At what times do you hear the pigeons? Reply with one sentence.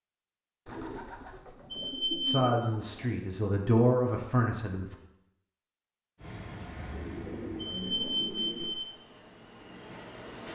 You can hear the pigeons from 0.7 to 3.2 s and from 6.9 to 8.8 s.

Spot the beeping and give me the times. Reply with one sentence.
The beeping can be heard from 1.7 to 2.4 s and from 7.6 to 8.7 s.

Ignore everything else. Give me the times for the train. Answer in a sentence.
The train can be heard from 6.2 to 10.5 s.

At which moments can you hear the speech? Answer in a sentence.
You can hear the speech from 2.2 to 5.0 s.